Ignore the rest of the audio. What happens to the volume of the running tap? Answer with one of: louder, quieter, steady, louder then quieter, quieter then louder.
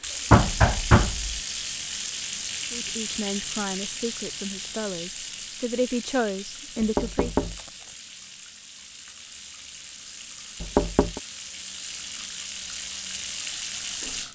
quieter then louder.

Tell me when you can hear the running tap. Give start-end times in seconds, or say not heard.
0.0-14.3.